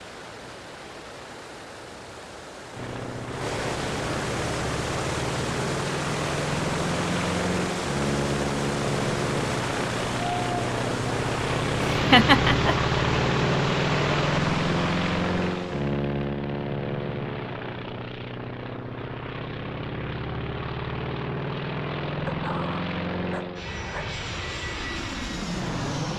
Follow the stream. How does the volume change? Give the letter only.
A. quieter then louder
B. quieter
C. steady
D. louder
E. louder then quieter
D.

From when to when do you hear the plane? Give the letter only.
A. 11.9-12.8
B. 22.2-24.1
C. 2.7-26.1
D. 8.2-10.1
C.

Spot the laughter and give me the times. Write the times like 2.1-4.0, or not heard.
11.9-12.8.